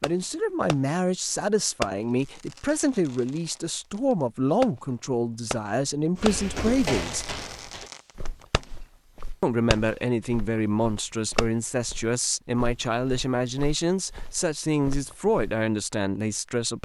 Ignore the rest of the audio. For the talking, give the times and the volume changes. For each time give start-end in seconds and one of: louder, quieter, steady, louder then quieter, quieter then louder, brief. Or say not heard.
0.0-7.2 steady
9.4-16.8 steady.